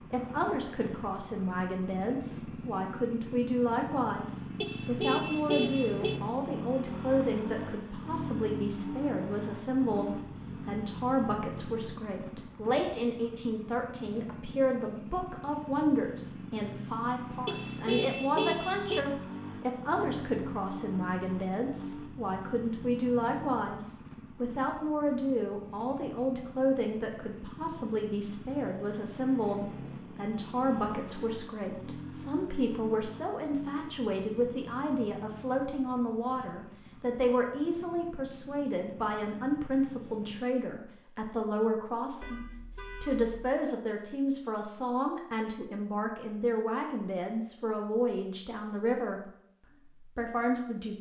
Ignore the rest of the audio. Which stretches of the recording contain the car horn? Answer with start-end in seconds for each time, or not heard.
4.6-6.2, 17.4-19.1, 42.2-43.4.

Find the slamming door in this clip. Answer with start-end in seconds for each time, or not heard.
not heard.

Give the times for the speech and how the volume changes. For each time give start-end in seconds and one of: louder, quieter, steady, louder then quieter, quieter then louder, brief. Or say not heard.
0.1-49.3 steady
50.0-50.9 brief.